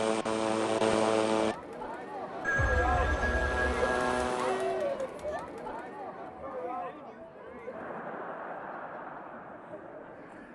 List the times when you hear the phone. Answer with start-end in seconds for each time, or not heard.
2.4-4.0.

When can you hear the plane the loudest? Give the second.
1 s.